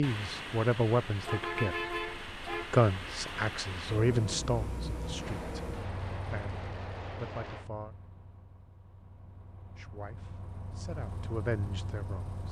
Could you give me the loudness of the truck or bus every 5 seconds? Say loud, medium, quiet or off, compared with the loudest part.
loud, medium, medium.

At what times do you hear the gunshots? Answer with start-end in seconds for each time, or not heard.
5.0-7.7.